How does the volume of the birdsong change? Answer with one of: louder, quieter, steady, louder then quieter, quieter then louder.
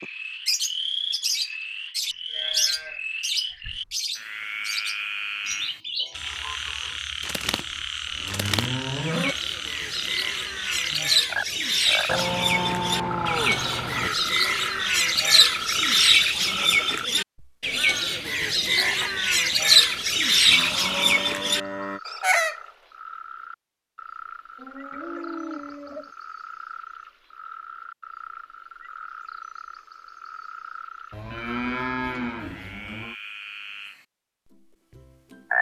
louder.